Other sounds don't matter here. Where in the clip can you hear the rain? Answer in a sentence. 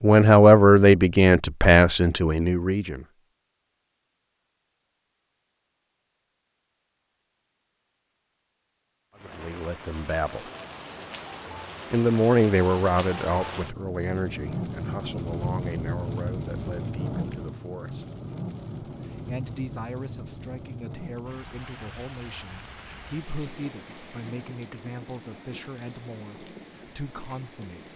You can hear the rain from 9.2 to 27.9 s.